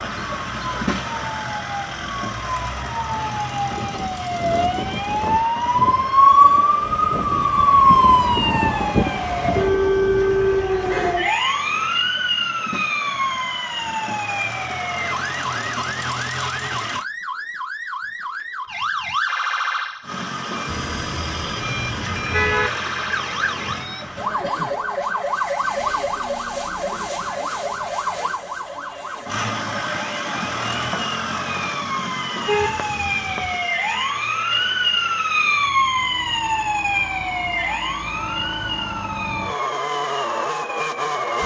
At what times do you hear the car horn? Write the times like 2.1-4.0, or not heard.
10.2-11.2, 20.6-22.7, 32.5-33.6.